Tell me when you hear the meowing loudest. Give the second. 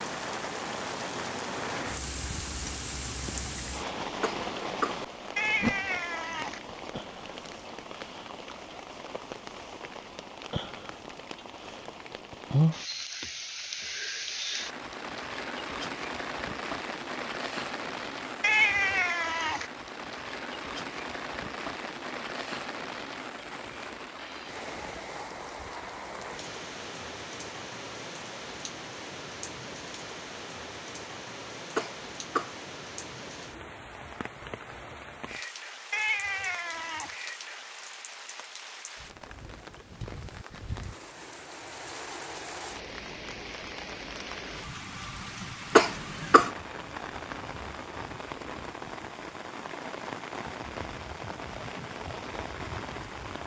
19 s.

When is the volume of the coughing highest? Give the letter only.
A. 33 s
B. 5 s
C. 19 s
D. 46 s
D.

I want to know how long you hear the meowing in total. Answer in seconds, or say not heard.
4 s.